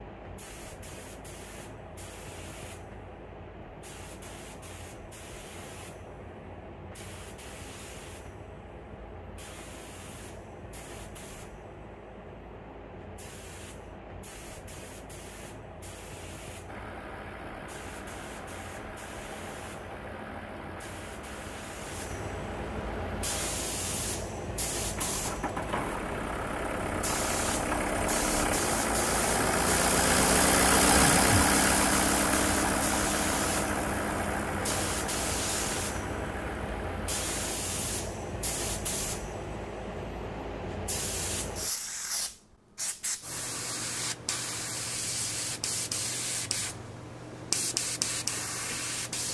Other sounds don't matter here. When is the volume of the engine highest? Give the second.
31 s.